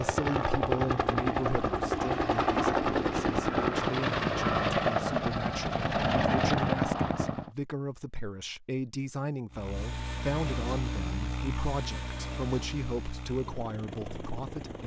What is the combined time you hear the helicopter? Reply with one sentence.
You can hear the helicopter for 13 seconds altogether.